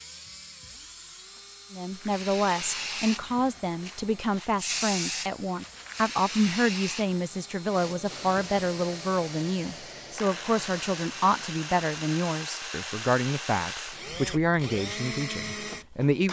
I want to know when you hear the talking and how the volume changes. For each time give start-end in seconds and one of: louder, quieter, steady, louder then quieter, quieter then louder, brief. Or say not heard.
1.7-16.2 steady.